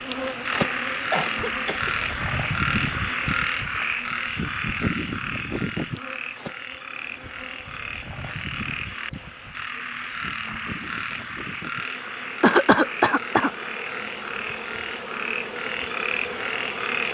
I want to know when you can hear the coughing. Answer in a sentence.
The coughing can be heard from 1.1 to 1.9 s and from 12.4 to 13.5 s.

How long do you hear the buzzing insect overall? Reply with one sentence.
The buzzing insect can be heard for 17 seconds in total.